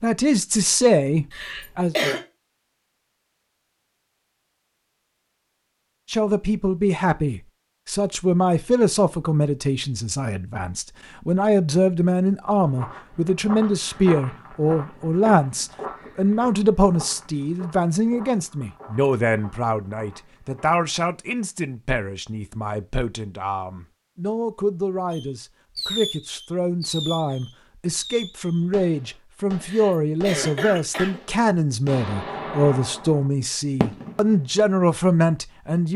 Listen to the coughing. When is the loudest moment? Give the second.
2 s.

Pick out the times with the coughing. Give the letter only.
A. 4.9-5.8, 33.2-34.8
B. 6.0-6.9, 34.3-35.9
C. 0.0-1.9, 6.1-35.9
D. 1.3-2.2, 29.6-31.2
D.